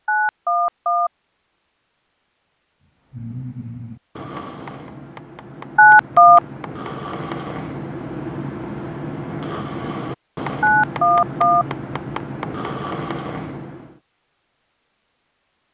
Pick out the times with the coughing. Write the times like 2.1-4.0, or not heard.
not heard.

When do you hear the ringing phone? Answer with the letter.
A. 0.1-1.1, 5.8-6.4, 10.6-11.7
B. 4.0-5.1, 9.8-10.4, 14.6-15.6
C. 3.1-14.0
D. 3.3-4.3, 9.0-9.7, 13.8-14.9
A.